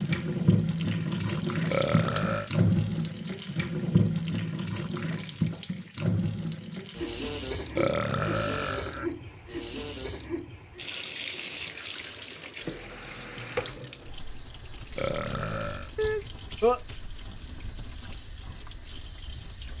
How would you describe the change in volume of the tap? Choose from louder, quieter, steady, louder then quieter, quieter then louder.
quieter.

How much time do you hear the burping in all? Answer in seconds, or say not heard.
3 s.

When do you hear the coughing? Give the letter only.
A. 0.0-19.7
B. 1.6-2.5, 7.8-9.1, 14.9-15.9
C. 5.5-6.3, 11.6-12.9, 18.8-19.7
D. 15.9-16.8
D.